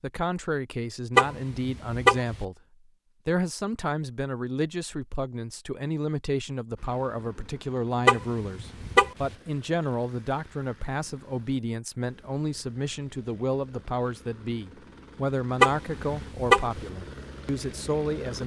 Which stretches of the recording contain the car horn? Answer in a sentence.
The car horn can be heard from 1.1 to 2.4 s, from 8.1 to 9.3 s and from 15.6 to 16.8 s.